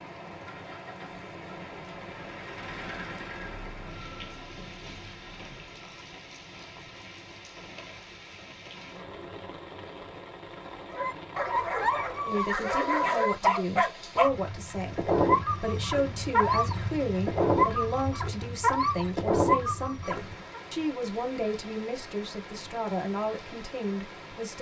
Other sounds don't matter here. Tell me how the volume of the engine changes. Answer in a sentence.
The volume of the engine goes up, then down.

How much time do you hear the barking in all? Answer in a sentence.
You can hear the barking for 9 seconds altogether.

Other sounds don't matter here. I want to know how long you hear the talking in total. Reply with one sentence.
You can hear the talking for 12 seconds altogether.